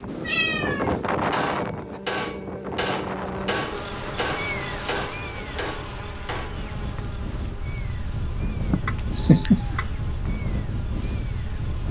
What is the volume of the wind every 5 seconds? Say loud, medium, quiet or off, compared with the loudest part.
loud, medium, loud.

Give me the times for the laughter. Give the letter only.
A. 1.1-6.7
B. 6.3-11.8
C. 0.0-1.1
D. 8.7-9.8
D.